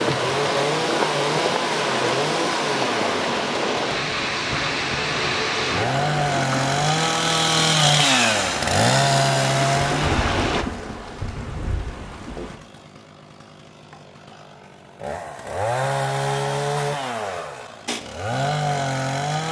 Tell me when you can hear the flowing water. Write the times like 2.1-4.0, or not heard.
0.0-10.7.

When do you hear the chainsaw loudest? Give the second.
8 s.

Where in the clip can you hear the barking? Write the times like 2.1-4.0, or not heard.
not heard.